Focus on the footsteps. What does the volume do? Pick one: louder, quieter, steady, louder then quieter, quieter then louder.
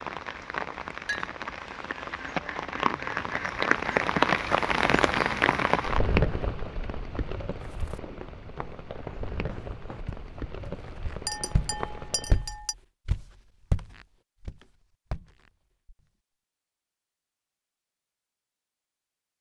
louder.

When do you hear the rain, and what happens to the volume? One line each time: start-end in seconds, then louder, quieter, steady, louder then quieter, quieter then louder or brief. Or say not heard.
0.0-12.4 louder then quieter.